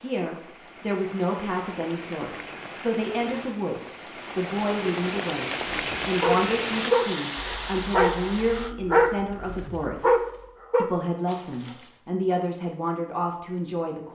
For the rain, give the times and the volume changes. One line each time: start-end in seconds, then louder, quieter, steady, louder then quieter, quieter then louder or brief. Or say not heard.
0.0-8.8 louder.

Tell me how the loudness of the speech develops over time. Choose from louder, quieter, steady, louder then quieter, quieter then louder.
steady.